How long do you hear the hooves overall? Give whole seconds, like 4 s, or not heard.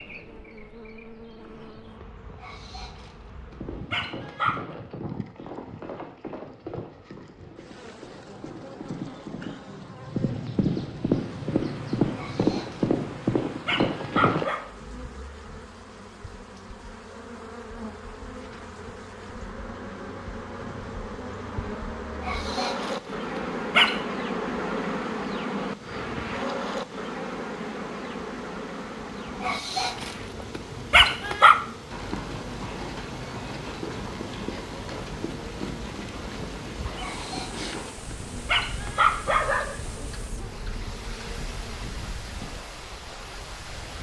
22 s.